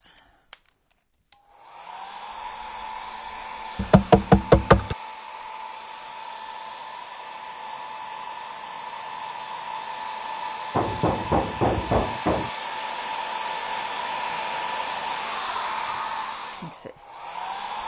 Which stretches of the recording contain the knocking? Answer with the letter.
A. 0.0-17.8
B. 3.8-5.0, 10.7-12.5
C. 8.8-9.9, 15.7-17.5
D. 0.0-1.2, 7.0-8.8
B.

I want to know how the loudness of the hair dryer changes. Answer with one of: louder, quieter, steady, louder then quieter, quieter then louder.
louder.